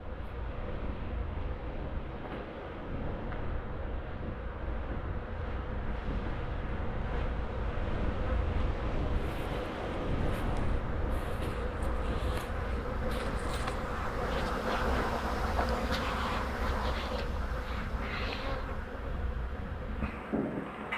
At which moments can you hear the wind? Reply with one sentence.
You can hear the wind from 0.0 to 20.9 s.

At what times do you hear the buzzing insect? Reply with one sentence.
You can hear the buzzing insect from 0.0 to 20.9 s.